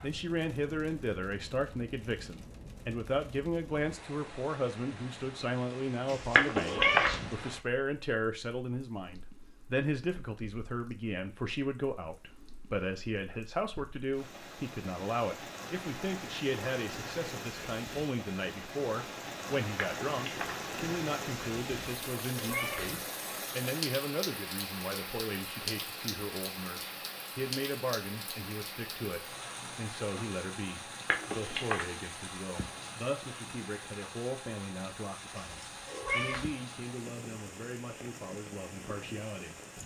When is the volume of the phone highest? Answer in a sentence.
The volume of the phone peaks at 7 seconds.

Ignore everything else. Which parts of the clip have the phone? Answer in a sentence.
The phone can be heard from 6.3 to 7.1 s, from 19.8 to 20.6 s and from 31.1 to 31.9 s.